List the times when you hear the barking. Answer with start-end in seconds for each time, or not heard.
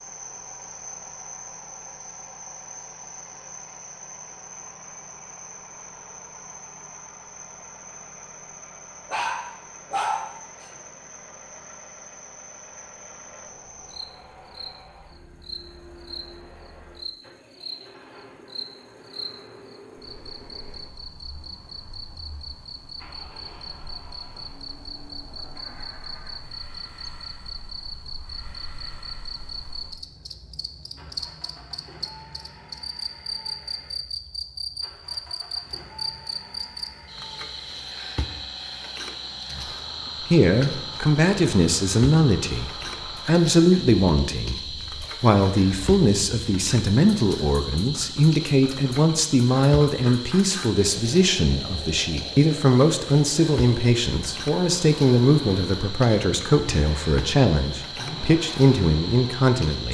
9.1-10.7.